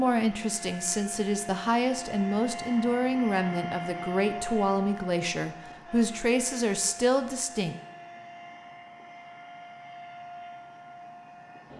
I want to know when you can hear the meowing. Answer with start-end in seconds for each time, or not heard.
not heard.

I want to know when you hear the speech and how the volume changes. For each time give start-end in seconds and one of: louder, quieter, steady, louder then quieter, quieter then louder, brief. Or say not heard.
0.0-7.8 steady.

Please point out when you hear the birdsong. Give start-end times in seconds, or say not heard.
not heard.